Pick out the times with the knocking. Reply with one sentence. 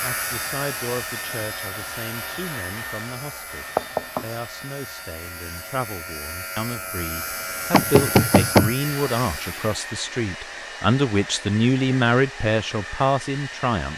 The knocking can be heard from 3.8 to 4.2 s and from 7.7 to 8.8 s.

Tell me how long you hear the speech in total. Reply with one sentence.
You can hear the speech for 14 seconds altogether.